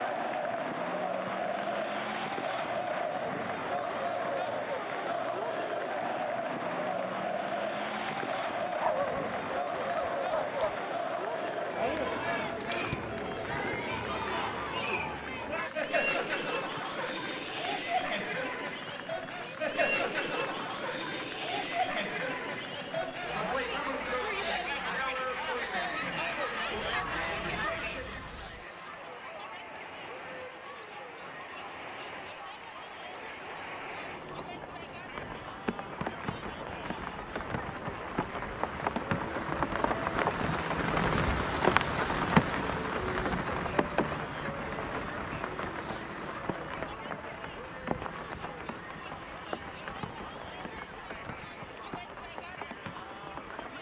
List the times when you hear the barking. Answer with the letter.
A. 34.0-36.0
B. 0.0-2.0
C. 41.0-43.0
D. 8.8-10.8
D.